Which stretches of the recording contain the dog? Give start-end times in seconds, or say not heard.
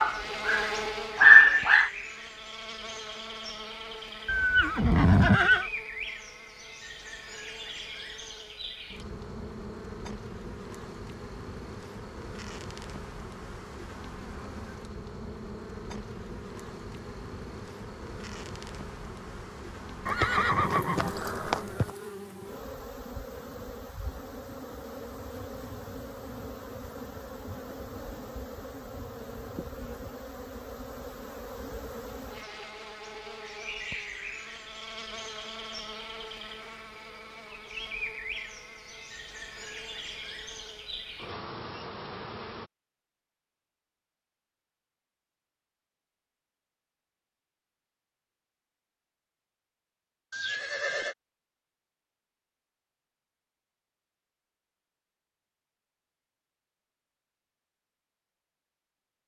0.0-1.9.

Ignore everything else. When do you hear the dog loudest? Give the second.
1 s.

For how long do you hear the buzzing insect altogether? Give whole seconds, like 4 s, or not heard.
43 s.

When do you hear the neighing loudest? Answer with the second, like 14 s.
5 s.